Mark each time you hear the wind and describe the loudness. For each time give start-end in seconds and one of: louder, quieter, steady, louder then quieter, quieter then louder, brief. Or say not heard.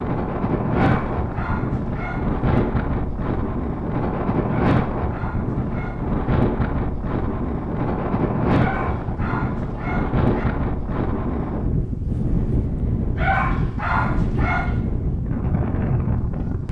0.0-16.6 steady.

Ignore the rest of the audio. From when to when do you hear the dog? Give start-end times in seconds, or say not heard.
0.7-2.6, 4.5-6.2, 8.6-10.4, 13.2-14.8.